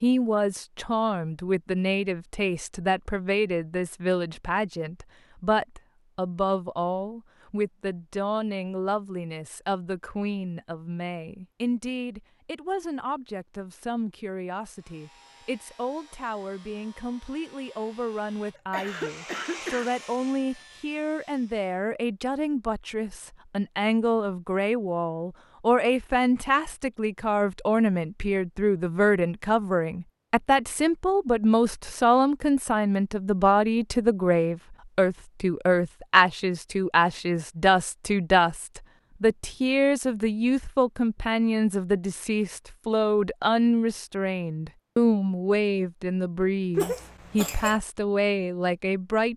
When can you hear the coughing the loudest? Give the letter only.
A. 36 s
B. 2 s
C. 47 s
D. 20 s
C.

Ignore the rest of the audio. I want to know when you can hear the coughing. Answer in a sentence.
You can hear the coughing from 18.6 to 19.9 s and from 46.8 to 47.8 s.